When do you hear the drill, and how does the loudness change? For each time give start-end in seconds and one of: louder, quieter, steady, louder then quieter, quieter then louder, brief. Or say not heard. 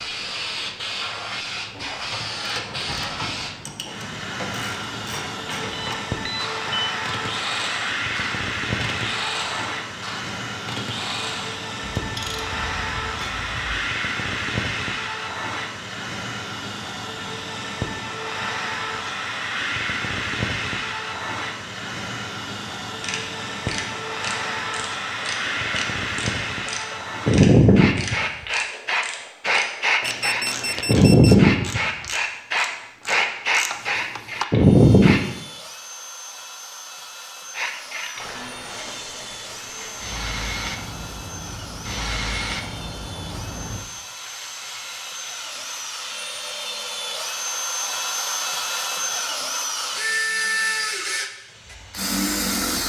34.5-52.8 louder.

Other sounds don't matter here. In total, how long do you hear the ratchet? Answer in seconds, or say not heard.
23 s.